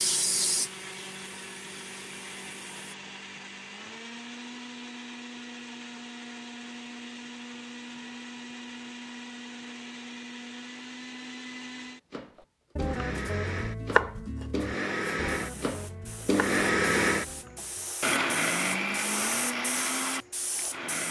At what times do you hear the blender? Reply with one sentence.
You can hear the blender from 0.0 to 21.0 s.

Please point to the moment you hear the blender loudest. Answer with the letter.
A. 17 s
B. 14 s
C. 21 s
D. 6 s
A.